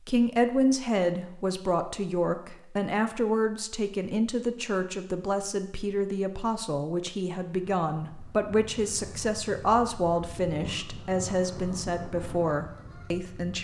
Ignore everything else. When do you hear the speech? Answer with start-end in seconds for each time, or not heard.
0.1-13.5.